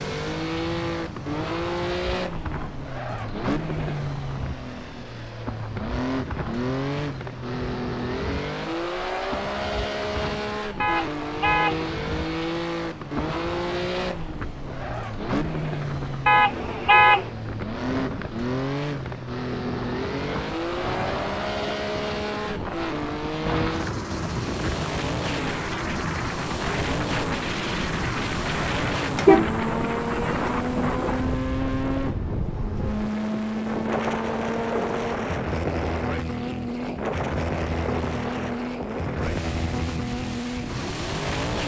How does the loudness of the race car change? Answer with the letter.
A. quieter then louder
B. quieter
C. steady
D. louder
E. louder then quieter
C.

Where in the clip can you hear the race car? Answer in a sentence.
You can hear the race car from 0.0 to 41.6 s.